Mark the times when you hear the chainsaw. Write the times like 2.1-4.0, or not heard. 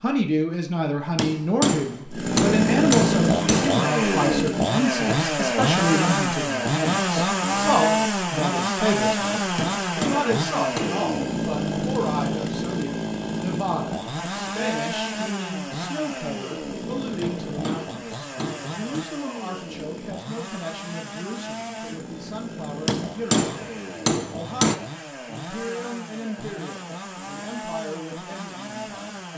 2.1-29.3.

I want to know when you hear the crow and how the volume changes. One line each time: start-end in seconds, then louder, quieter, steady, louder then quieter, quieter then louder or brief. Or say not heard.
not heard.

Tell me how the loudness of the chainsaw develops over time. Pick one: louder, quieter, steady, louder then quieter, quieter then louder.
quieter.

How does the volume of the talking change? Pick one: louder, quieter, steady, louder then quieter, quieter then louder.
quieter.